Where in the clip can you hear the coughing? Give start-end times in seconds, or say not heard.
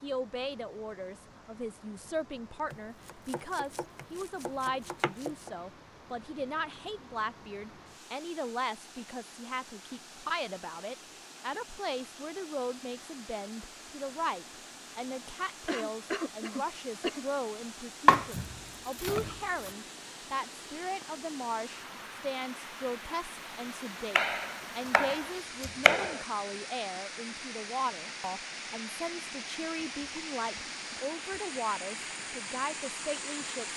15.7-17.2.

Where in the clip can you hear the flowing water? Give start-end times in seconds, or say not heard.
0.0-33.7.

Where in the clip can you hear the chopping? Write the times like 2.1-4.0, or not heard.
2.7-5.5, 18.1-19.7, 24.1-26.2.